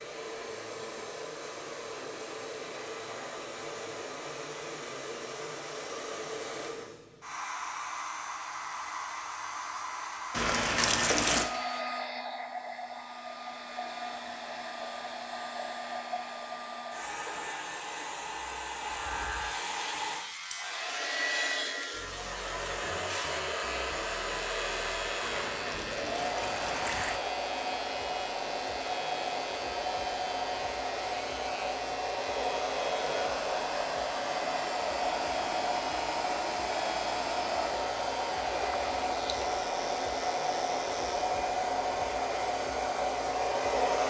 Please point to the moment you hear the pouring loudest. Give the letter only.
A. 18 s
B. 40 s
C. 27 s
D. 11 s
D.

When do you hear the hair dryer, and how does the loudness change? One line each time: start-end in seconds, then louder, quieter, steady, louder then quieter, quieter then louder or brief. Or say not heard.
0.0-44.0 louder.